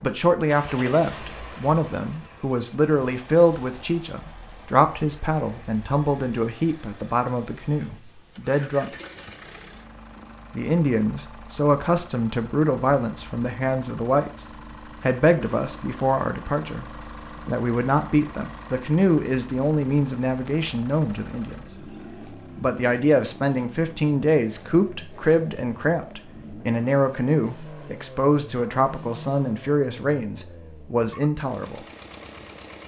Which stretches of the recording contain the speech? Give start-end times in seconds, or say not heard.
0.0-8.9, 10.6-21.9, 22.6-31.9.